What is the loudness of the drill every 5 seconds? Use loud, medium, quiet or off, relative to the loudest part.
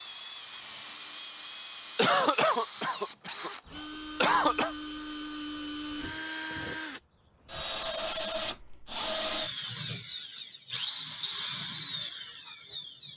medium, loud, loud.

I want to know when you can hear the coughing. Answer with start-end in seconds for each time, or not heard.
1.9-4.8.